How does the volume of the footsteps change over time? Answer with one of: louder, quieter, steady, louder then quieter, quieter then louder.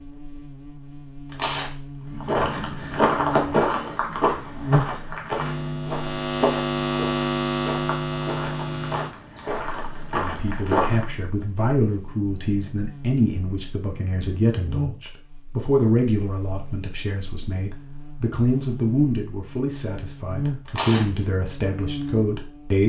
quieter then louder.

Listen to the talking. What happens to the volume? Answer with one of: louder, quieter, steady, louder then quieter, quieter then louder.
steady.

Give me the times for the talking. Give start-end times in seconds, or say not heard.
10.2-22.8.